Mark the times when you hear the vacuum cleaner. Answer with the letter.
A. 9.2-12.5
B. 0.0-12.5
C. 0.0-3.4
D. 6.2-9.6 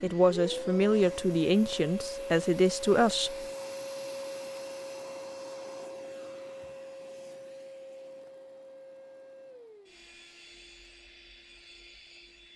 B.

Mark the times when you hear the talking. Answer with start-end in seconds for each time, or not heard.
0.0-3.4.